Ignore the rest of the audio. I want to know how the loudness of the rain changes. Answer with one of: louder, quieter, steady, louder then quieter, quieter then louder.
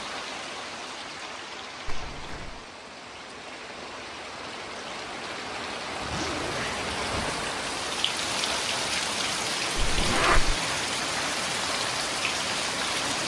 louder.